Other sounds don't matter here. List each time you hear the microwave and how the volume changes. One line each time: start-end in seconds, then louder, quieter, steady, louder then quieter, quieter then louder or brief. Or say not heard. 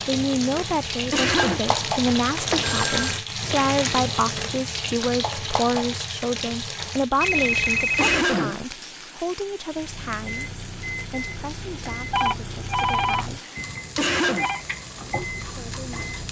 9.7-16.2 steady.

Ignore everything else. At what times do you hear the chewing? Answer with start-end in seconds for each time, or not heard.
not heard.